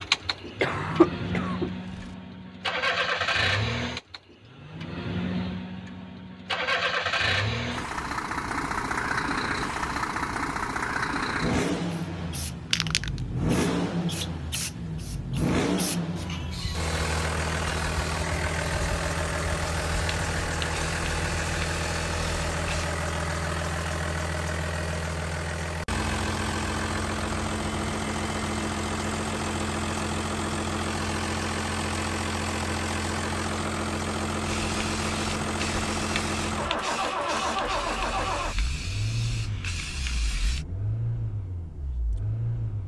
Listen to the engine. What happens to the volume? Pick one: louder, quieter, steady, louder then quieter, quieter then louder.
steady.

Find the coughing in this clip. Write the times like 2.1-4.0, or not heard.
0.6-2.1.